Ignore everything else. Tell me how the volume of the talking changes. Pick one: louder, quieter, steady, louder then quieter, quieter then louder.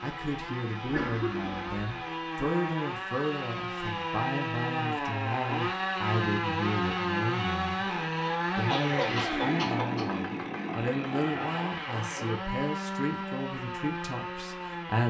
steady.